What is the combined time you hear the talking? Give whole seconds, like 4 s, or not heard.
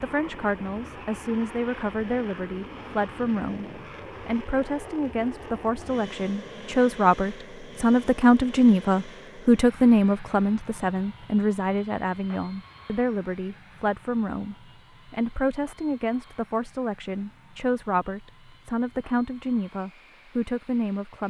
21 s.